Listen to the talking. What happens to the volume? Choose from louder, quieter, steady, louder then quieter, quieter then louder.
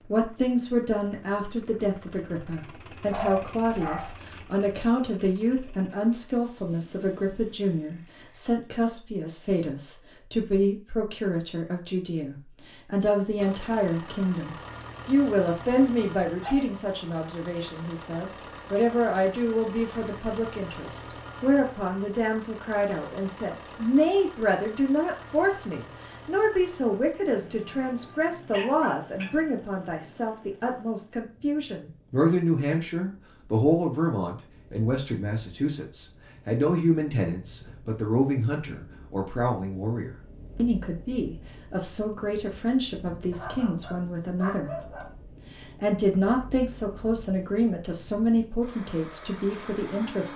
steady.